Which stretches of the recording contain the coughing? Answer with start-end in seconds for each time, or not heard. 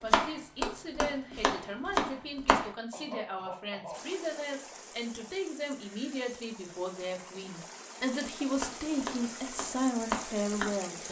2.9-4.2.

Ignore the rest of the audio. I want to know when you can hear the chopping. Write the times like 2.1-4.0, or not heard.
0.0-2.7, 8.6-11.0.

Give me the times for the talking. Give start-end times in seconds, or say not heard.
0.0-11.0.